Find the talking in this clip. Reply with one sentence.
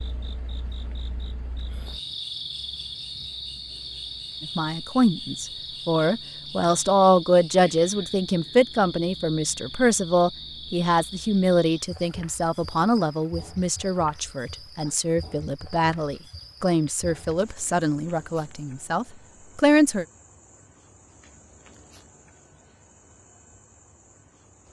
The talking can be heard from 4.4 to 20.1 s.